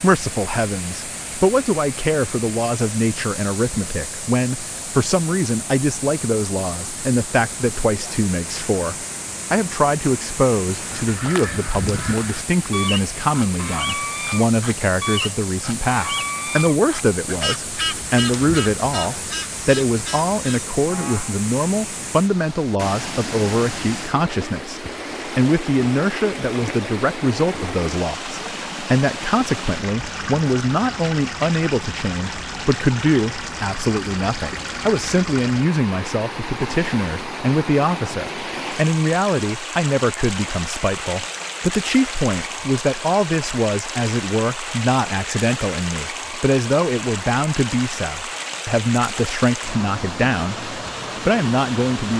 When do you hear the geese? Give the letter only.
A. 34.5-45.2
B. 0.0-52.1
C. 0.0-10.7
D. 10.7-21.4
D.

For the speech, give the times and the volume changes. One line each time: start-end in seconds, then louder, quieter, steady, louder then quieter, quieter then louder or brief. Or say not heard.
0.0-52.1 steady.